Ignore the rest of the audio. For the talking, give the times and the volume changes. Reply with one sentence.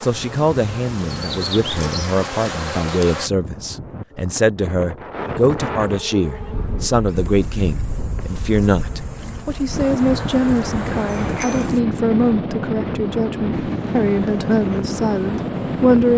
You can hear the talking from 0.0 to 16.1 s, at a steady volume.